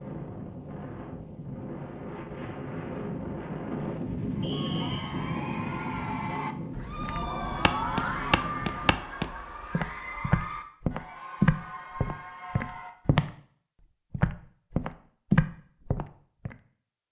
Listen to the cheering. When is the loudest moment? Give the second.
8 s.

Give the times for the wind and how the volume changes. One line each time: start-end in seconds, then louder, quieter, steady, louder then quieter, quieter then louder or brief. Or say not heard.
0.0-8.9 louder then quieter.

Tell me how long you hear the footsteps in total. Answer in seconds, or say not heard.
9 s.